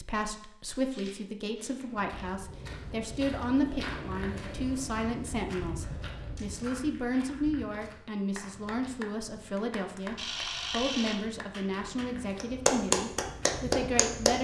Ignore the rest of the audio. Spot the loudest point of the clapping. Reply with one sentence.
The volume of the clapping peaks at 13 seconds.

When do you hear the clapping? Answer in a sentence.
You can hear the clapping from 8.3 to 14.3 s.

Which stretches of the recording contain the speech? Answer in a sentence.
The speech can be heard from 0.0 to 14.3 s.